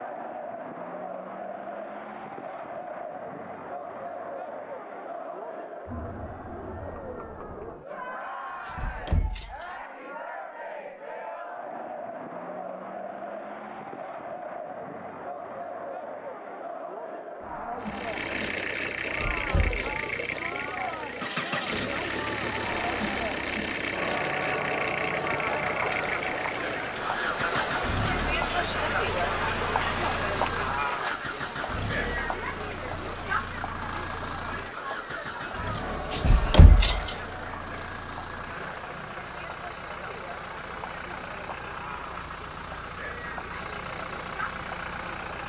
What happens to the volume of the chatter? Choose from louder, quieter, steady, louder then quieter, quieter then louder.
louder then quieter.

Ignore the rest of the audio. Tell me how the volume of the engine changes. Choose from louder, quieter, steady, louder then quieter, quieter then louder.
quieter.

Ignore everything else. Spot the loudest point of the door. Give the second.
37 s.